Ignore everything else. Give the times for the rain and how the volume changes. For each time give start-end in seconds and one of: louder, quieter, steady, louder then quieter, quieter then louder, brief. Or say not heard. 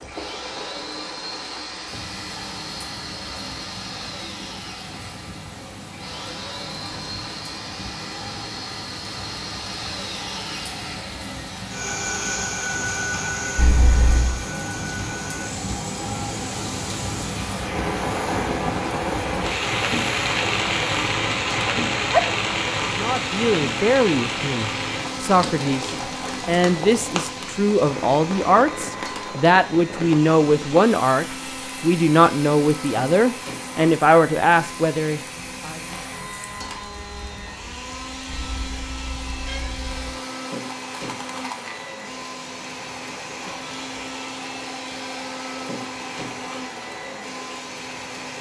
0.0-48.3 louder then quieter.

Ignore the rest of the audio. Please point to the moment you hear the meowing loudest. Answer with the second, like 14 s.
14 s.